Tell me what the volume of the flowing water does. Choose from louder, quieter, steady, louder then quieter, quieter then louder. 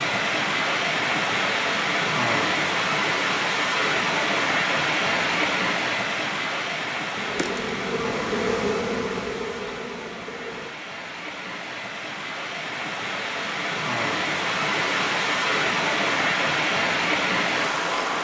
quieter then louder.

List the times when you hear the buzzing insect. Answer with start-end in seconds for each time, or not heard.
7.2-10.7.